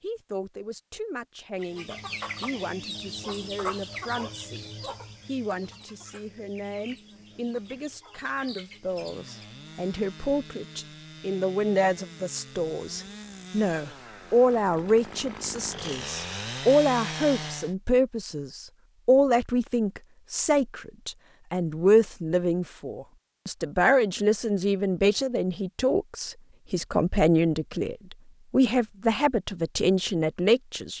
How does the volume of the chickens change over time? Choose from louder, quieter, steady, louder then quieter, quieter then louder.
quieter.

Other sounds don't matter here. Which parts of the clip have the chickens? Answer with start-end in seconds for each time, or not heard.
1.6-9.6.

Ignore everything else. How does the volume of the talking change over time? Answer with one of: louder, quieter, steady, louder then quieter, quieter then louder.
louder.